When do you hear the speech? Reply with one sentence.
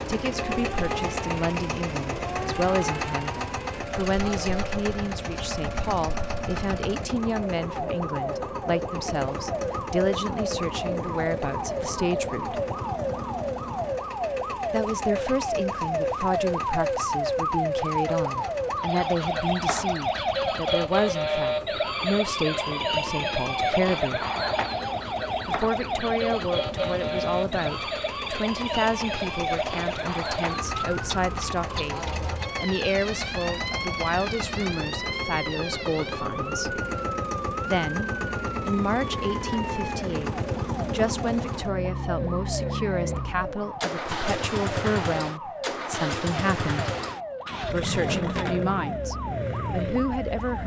You can hear the speech from 0.1 to 12.6 s, from 14.7 to 24.2 s, from 25.4 to 36.8 s, from 37.6 to 47.0 s and from 47.7 to 50.6 s.